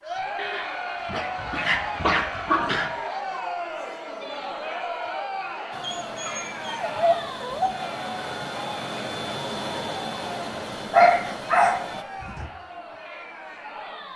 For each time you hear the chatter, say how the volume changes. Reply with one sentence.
The chatter can be heard from 0.0 to 14.1 s, getting quieter.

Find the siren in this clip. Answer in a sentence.
The siren can't be heard in this clip.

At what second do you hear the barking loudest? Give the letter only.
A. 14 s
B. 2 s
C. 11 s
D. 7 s
C.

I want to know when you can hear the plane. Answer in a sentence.
You can hear the plane from 5.7 to 12.1 s.